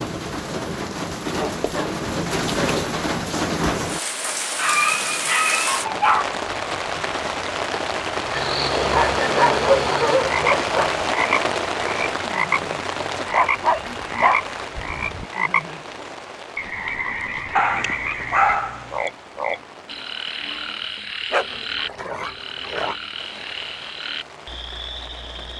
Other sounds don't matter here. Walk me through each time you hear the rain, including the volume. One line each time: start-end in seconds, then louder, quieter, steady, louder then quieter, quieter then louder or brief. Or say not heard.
0.0-25.5 quieter.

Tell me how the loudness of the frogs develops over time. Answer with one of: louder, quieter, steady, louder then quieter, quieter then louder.
quieter.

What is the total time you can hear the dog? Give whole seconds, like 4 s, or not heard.
10 s.